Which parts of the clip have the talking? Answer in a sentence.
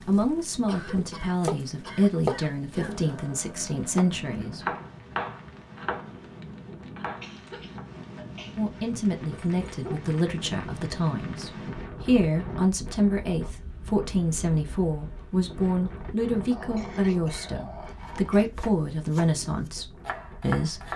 The talking can be heard from 0.0 to 4.7 s and from 8.6 to 20.9 s.